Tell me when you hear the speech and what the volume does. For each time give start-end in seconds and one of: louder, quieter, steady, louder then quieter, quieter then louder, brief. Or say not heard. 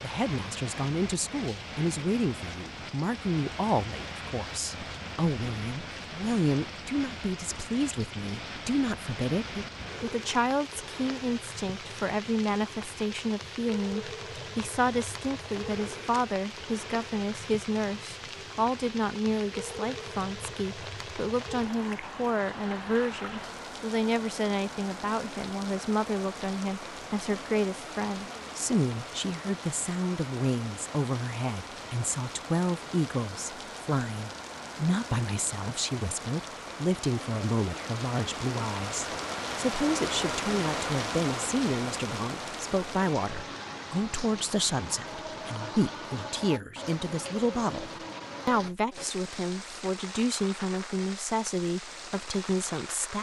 0.0-53.1 steady.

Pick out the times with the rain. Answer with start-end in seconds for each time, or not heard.
0.0-53.1.